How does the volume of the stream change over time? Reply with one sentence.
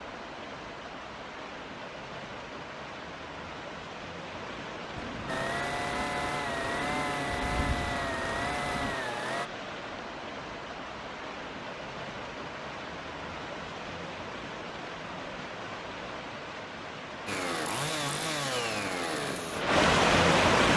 The volume of the stream goes up.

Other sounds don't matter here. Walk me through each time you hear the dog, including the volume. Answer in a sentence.
The dog can't be heard in this clip.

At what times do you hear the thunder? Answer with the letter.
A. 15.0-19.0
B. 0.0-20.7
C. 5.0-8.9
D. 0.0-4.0
C.